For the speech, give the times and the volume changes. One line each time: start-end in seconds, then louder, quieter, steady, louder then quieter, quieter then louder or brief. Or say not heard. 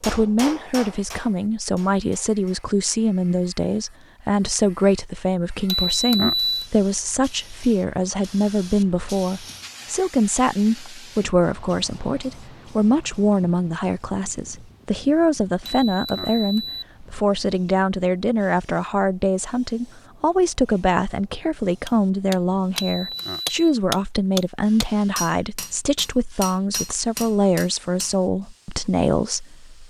0.0-29.8 steady.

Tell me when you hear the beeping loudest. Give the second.
6 s.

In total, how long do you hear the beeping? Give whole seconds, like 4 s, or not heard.
3 s.